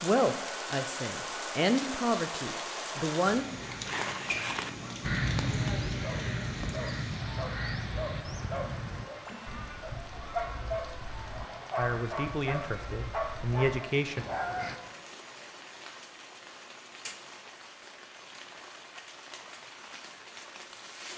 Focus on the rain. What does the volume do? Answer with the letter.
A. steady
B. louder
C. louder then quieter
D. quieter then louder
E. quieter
E.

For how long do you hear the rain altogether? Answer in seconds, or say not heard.
21 s.